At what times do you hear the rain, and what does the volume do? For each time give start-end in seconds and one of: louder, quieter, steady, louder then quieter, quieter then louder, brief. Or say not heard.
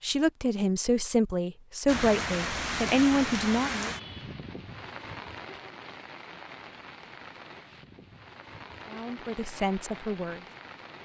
1.9-11.0 quieter.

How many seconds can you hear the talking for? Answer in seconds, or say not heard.
6 s.